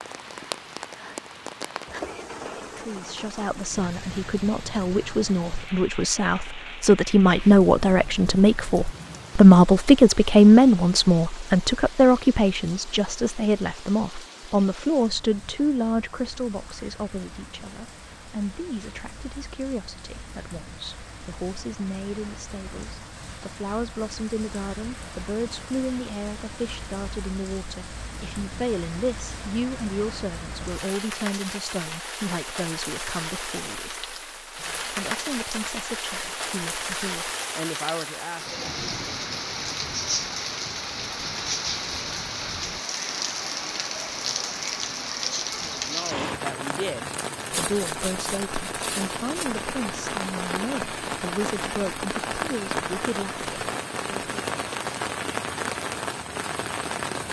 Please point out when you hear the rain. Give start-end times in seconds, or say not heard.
0.0-57.2.